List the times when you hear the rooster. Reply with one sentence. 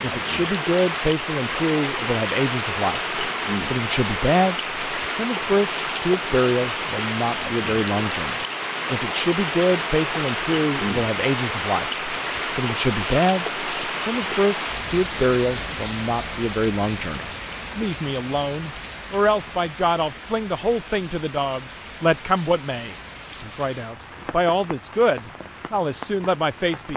You can't hear the rooster here.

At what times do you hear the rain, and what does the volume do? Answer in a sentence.
The rain can be heard from 0.0 to 26.9 s, getting quieter.